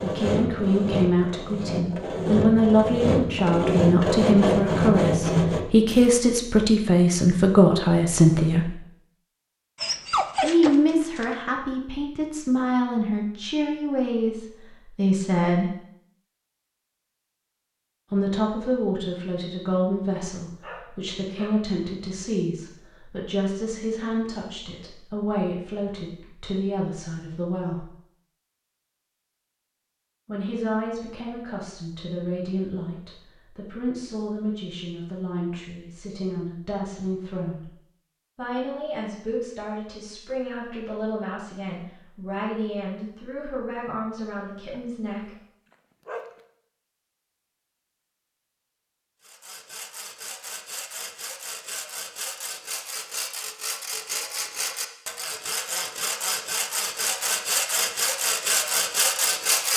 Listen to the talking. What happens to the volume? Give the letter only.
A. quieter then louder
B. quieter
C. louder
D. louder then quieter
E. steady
B.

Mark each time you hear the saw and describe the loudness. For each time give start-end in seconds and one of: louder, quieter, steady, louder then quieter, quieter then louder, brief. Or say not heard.
0.0-6.1 louder
49.2-59.7 louder.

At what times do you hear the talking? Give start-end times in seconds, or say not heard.
0.0-8.8, 10.4-15.7, 18.1-27.9, 30.2-37.7, 38.4-45.3.